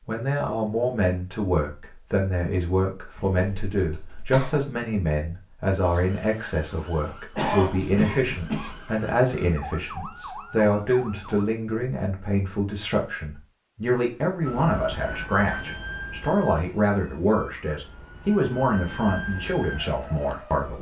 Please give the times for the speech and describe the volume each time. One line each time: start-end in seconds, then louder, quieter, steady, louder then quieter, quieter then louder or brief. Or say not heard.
0.1-20.7 steady.